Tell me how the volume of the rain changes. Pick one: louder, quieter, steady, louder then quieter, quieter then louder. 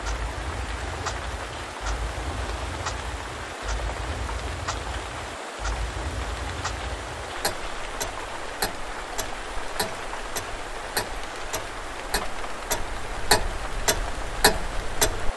steady.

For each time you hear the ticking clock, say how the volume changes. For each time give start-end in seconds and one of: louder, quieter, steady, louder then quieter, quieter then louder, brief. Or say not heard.
0.0-15.3 louder.